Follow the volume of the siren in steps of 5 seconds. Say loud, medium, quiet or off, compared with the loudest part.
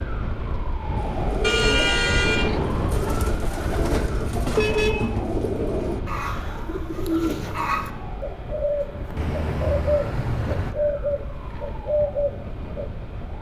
loud, medium, medium.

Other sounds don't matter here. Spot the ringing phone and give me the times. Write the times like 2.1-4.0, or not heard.
not heard.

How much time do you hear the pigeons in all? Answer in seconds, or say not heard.
12 s.